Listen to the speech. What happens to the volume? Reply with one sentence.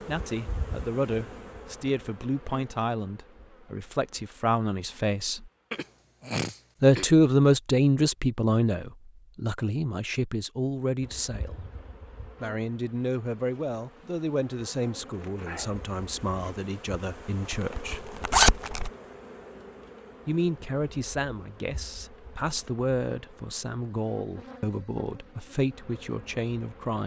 The loudness of the speech goes up, then down.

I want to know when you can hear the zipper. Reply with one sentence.
The zipper can be heard from 17.5 to 18.9 s.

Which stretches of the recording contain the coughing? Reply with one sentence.
You can hear the coughing from 5.7 to 7.0 s.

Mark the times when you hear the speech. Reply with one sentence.
The speech can be heard from 0.1 to 5.5 s, from 6.8 to 11.6 s, from 12.4 to 18.0 s and from 20.2 to 27.0 s.